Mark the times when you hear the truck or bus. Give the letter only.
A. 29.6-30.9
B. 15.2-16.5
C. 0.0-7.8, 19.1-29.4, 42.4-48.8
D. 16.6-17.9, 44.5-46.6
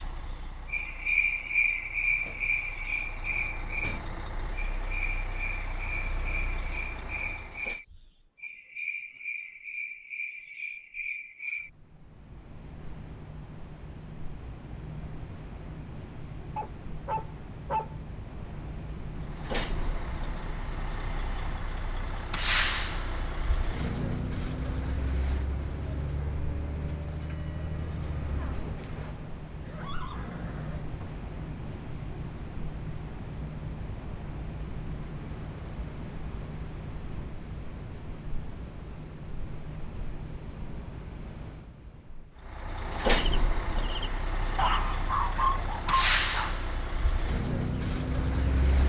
C.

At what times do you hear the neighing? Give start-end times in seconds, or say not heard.
29.6-30.9.